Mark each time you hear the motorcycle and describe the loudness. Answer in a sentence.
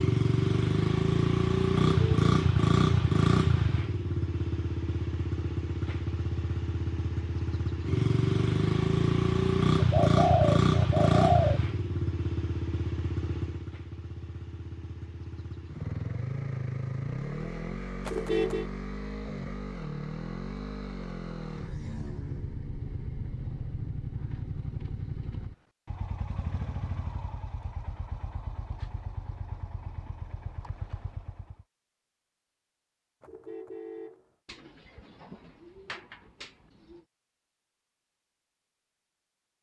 The motorcycle can be heard from 0.0 to 31.6 s, getting quieter.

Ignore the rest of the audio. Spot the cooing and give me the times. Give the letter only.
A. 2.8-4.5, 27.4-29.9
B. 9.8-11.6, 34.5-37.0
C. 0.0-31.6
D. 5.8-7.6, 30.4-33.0
B.